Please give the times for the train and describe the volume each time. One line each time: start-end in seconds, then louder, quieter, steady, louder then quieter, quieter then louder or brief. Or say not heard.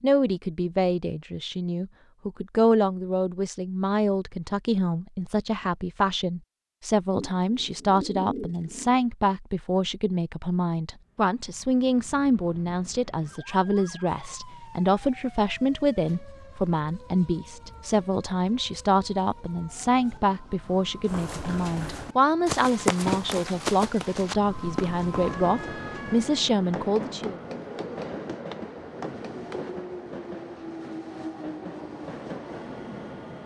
25.1-33.4 steady.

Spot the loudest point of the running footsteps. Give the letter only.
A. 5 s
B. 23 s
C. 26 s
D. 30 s
B.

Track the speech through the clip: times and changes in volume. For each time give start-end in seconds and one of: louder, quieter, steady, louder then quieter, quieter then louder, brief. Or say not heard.
0.0-27.4 steady.